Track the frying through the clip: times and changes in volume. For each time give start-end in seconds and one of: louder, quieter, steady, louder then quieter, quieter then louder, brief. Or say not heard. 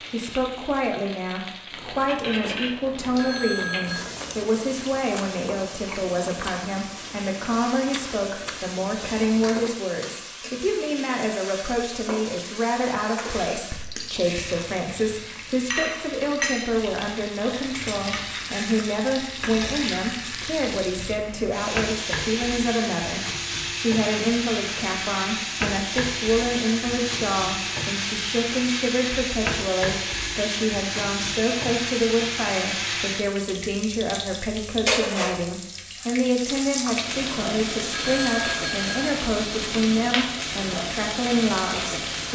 0.0-42.2 louder.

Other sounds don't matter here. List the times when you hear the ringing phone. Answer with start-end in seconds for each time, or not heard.
3.1-4.1, 37.9-39.1.